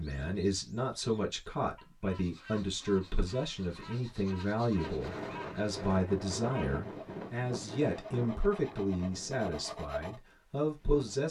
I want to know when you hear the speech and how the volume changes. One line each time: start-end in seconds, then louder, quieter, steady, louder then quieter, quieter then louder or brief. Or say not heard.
0.0-11.2 steady.